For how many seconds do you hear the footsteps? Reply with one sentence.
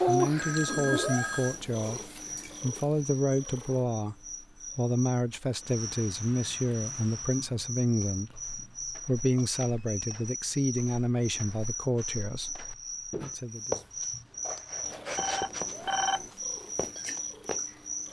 You can hear the footsteps for 10 seconds altogether.